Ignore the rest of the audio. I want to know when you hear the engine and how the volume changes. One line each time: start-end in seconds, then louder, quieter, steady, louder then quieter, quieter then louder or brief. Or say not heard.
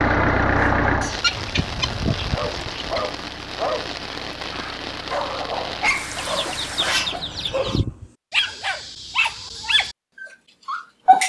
0.0-7.7 quieter.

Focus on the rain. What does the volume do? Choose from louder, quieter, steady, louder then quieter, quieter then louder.
steady.